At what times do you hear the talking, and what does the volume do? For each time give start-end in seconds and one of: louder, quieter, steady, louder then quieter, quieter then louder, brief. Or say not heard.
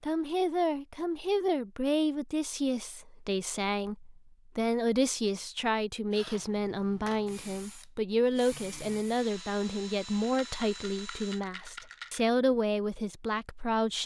0.0-14.0 steady.